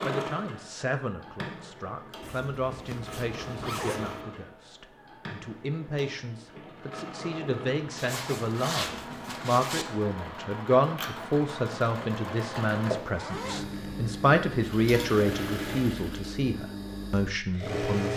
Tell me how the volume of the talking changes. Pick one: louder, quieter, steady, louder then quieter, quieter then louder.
louder.